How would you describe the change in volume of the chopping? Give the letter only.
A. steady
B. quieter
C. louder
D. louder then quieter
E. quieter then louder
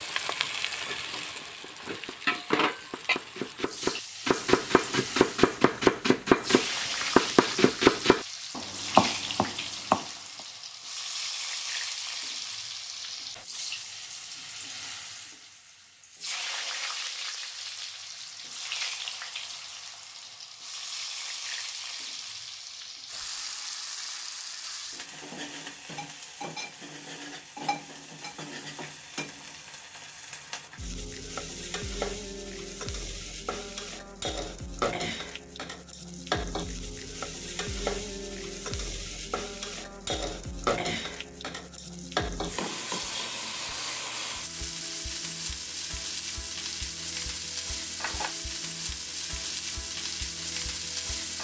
C.